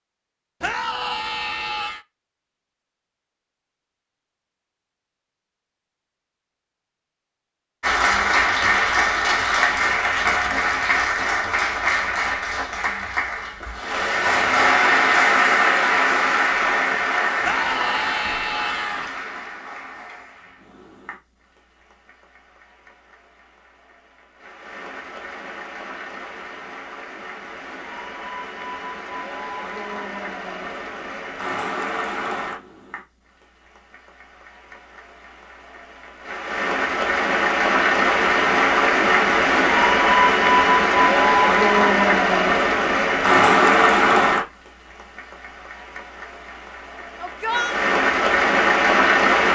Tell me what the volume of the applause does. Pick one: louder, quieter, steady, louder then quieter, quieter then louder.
quieter then louder.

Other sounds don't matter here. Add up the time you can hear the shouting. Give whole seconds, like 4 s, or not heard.
4 s.